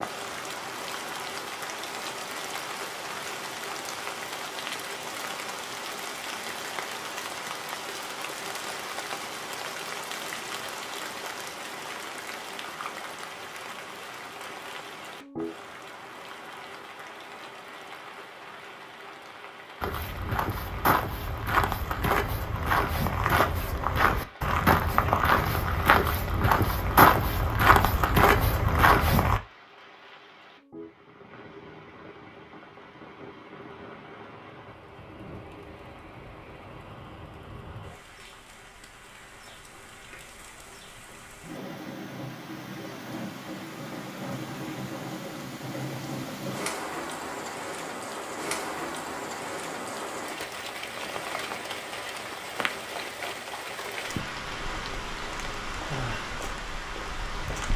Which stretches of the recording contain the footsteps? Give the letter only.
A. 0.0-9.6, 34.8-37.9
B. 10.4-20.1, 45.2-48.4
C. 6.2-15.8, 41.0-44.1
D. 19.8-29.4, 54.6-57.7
D.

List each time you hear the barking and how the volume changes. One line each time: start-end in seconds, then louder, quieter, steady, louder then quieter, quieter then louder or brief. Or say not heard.
not heard.